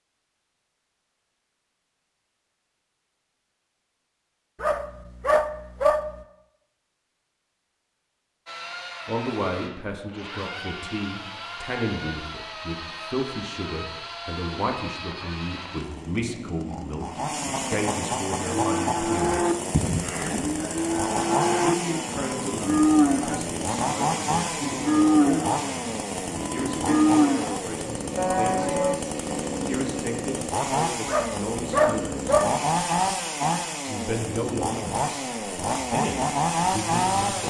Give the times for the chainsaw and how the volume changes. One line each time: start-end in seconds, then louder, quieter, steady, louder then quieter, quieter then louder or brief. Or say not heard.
8.4-37.4 louder.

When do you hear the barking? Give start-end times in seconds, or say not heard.
4.6-6.1, 31.1-32.5.